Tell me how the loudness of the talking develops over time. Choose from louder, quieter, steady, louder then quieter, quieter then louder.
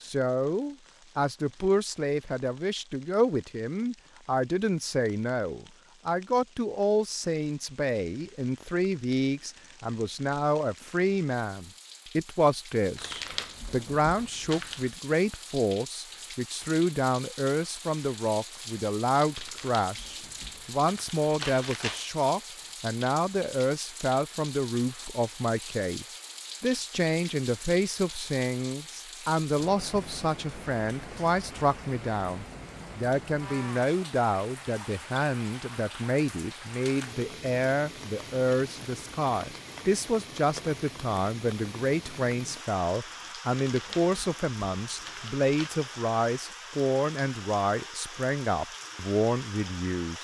steady.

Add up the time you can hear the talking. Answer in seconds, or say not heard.
50 s.